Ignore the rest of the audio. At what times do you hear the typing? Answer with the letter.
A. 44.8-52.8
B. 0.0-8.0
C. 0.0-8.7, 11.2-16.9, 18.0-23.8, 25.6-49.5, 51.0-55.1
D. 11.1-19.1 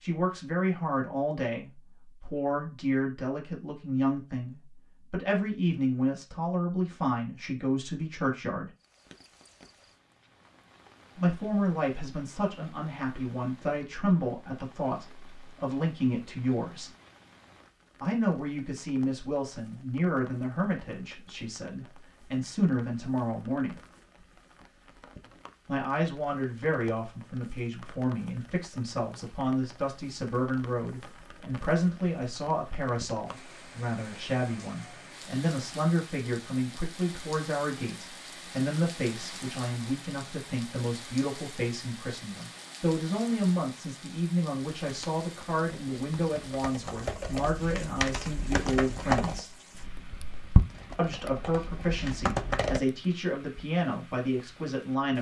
A.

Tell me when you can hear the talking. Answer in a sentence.
You can hear the talking from 0.0 to 8.7 s, from 11.2 to 16.9 s, from 18.0 to 23.8 s, from 25.6 to 49.5 s and from 51.0 to 55.1 s.